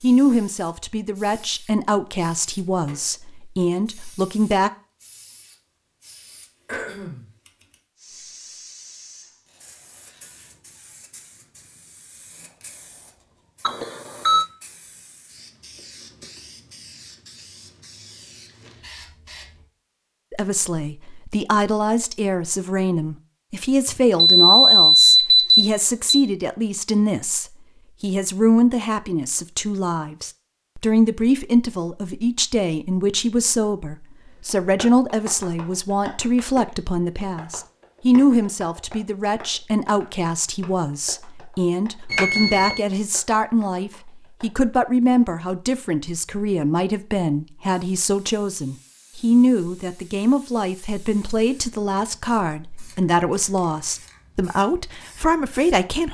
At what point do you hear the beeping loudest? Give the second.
25 s.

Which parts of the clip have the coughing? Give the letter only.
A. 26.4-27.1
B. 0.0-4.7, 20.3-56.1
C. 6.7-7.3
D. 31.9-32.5
C.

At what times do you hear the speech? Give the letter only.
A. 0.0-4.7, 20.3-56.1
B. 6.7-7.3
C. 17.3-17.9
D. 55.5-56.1
A.